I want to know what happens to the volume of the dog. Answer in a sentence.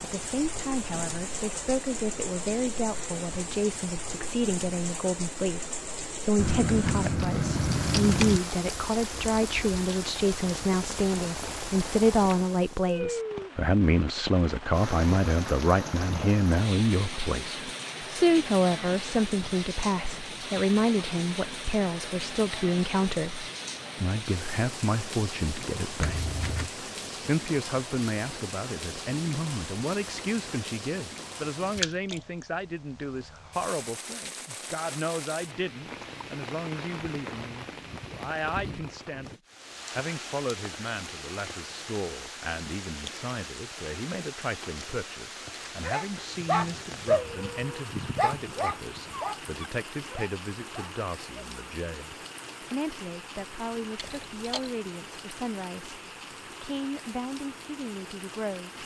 The loudness of the dog goes down.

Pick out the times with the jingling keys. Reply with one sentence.
The jingling keys can be heard from 6.3 to 8.4 s, from 26.0 to 26.7 s and from 54.0 to 54.7 s.